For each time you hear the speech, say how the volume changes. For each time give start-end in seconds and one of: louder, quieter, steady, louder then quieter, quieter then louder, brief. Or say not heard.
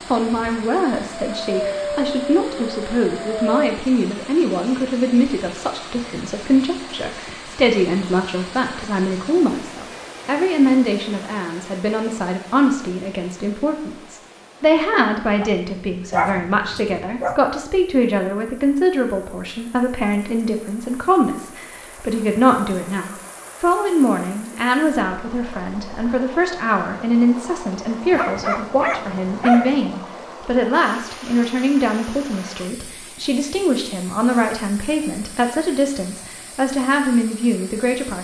0.1-38.2 steady.